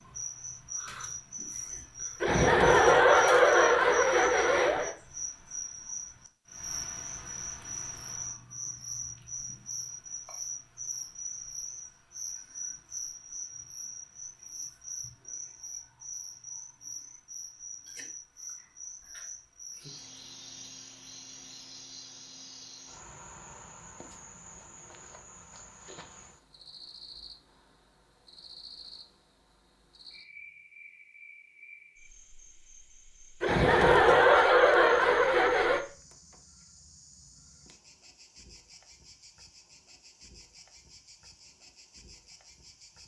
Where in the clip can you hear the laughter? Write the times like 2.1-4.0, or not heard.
2.2-5.0, 33.4-35.8.